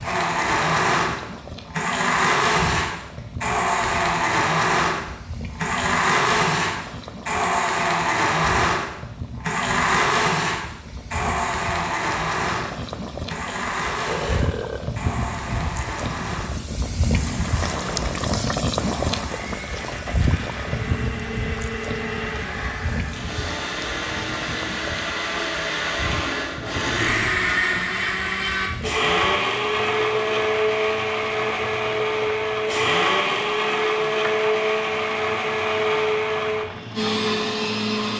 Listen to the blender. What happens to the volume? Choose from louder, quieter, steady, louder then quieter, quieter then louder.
quieter then louder.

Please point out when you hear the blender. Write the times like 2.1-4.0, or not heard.
0.0-38.1.